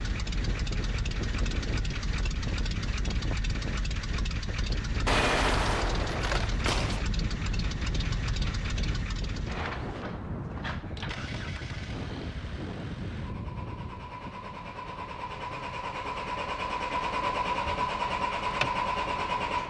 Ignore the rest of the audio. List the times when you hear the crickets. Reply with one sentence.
The crickets can't be heard in this clip.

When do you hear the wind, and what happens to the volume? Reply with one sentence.
You can hear the wind from 0.0 to 19.6 s, getting quieter.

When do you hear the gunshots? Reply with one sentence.
The gunshots can be heard from 5.0 to 7.0 s.